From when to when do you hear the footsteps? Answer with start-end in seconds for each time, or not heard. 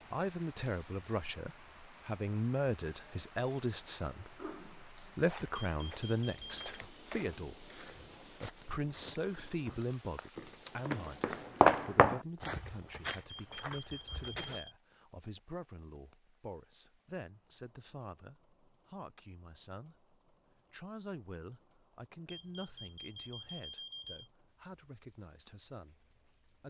5.2-14.6.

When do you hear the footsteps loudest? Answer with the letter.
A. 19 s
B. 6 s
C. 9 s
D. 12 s
D.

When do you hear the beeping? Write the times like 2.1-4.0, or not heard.
5.8-6.8, 13.0-14.8, 22.3-24.3.